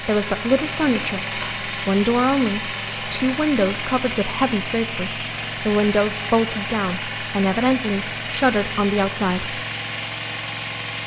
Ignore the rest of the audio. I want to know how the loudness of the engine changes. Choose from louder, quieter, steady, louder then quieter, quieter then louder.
steady.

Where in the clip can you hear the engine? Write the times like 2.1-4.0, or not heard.
0.0-11.0.